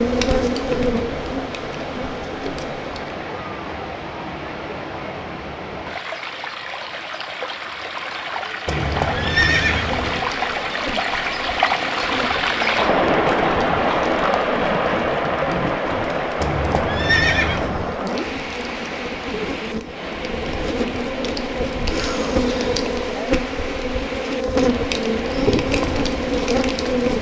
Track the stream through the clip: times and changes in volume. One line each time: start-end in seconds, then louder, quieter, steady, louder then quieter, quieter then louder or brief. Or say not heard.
0.0-27.1 louder then quieter.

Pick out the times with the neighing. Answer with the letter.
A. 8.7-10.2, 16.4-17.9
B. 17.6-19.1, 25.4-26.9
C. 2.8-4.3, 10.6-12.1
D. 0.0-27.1
A.